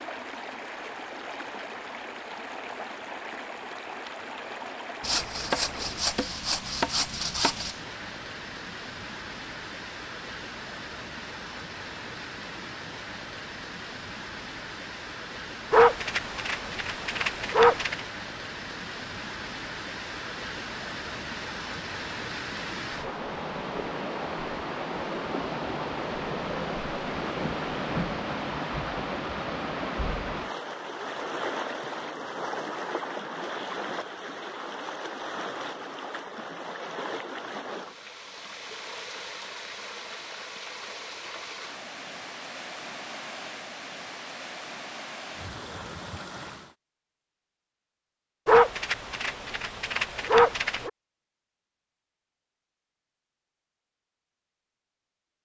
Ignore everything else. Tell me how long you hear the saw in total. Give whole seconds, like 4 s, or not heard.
3 s.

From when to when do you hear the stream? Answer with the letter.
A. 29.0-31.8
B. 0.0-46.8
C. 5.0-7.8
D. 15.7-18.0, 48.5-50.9
B.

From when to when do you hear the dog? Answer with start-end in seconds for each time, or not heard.
15.7-18.0, 48.5-50.9.